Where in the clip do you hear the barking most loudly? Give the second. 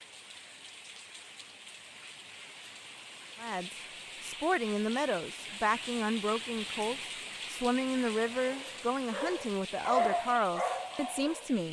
10 s.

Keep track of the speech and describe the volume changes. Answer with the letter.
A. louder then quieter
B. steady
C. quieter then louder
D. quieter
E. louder
B.